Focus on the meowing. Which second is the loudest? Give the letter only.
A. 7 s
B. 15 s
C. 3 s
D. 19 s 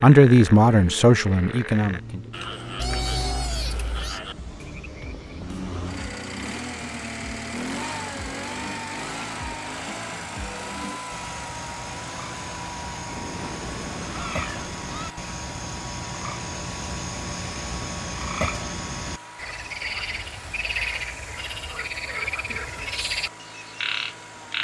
C.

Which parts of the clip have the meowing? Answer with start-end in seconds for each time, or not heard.
2.8-4.2, 13.1-15.1.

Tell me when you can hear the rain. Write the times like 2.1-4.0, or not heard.
not heard.